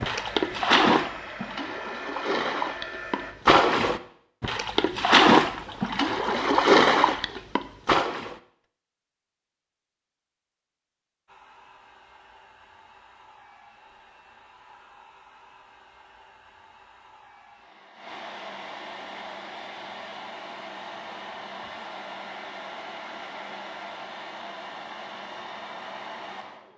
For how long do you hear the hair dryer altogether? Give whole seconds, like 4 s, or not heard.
19 s.